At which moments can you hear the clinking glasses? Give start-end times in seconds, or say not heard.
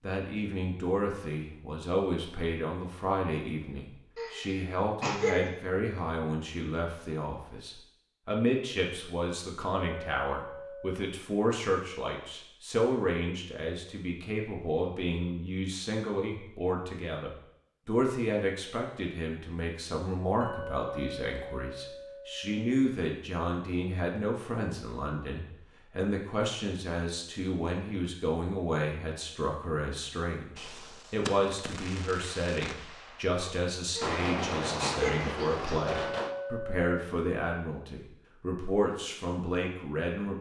9.8-11.0, 20.4-22.6, 35.9-36.9.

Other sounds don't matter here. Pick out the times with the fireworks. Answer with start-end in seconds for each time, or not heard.
30.6-36.4.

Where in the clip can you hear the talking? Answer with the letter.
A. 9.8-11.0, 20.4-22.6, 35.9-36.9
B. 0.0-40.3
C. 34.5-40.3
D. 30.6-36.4
B.